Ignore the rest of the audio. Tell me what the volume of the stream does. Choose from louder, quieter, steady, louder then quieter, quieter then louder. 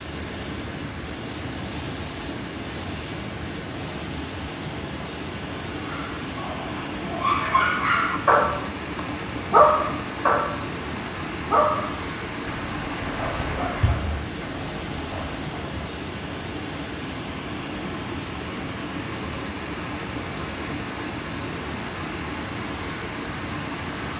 steady.